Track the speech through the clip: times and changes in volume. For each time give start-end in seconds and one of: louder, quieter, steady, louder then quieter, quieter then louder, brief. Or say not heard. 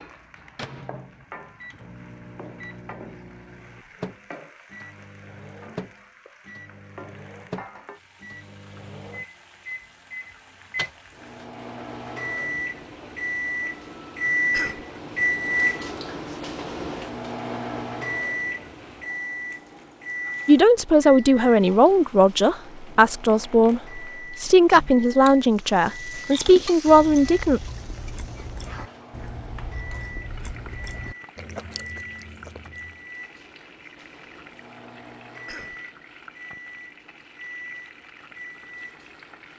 20.4-27.6 steady.